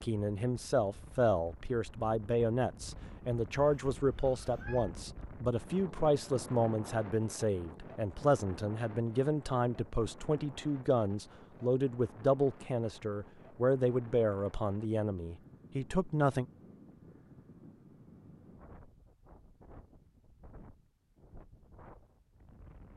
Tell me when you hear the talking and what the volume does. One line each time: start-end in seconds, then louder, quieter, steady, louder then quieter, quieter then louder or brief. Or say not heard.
0.0-16.4 steady.